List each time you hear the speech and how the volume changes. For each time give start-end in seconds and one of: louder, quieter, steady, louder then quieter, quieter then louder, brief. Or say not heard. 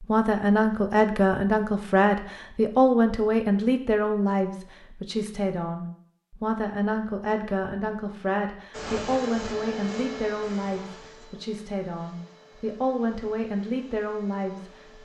0.0-14.9 quieter.